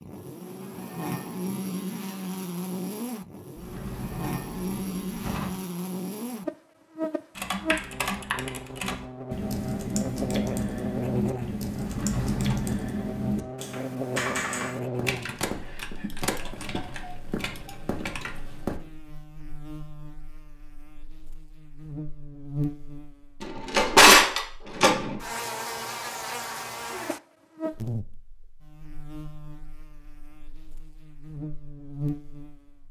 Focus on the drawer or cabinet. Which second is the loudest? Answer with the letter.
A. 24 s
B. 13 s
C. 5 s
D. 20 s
A.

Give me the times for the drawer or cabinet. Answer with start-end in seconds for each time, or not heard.
3.5-5.5, 11.8-12.8, 23.4-25.1.